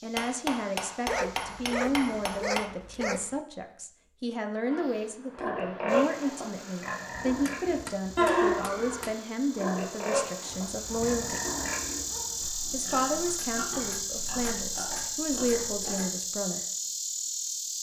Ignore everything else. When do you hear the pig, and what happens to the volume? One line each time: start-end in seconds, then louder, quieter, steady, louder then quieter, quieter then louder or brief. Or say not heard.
4.7-16.1 quieter.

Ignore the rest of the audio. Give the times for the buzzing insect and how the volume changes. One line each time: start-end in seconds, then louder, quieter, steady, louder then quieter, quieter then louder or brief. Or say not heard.
0.0-2.4 brief
5.8-17.7 louder.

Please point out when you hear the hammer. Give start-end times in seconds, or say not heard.
0.1-2.7, 7.2-9.2, 13.3-16.2.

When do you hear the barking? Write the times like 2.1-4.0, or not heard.
1.1-3.4, 10.4-12.5.